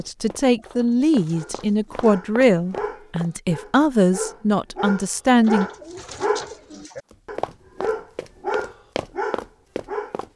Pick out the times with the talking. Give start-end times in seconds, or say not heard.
0.0-5.7.